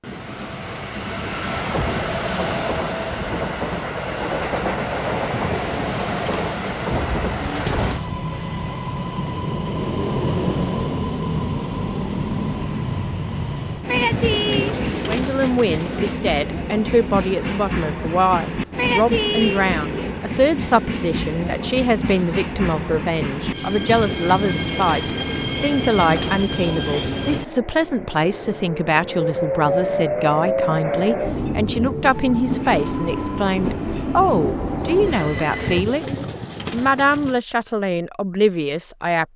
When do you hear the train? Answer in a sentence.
The train can be heard from 0.0 to 35.9 s.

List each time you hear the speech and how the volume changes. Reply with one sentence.
You can hear the speech from 15.1 to 39.3 s, at a steady volume.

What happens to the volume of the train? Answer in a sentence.
The loudness of the train stays about the same.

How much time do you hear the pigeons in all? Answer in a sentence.
You can hear the pigeons for 9 seconds altogether.